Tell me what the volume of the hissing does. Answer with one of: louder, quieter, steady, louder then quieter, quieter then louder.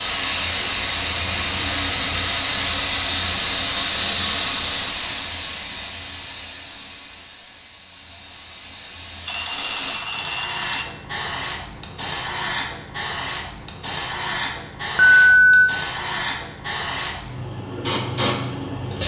quieter then louder.